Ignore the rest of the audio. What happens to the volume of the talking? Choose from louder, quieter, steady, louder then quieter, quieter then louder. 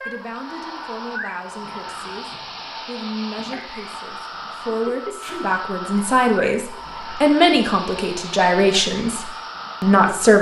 louder.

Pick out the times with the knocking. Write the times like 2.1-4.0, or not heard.
not heard.